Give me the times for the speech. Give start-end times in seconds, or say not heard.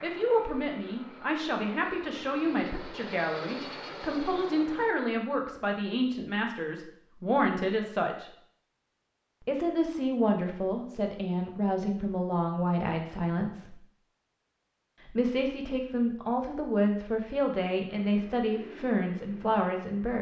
0.0-8.3, 9.4-13.8, 15.1-20.1.